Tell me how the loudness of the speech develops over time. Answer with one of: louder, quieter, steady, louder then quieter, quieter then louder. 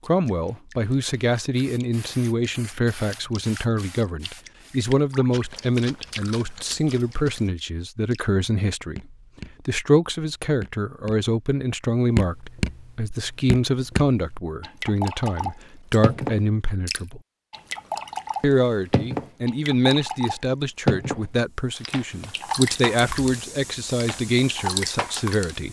steady.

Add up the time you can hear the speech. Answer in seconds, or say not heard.
24 s.